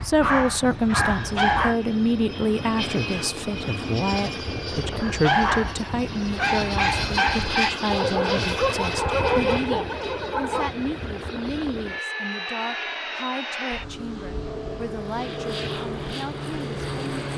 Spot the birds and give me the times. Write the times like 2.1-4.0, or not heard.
not heard.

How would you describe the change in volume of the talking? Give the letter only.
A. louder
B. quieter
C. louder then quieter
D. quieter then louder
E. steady
B.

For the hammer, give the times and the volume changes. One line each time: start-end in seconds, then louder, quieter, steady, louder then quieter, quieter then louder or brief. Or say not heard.
not heard.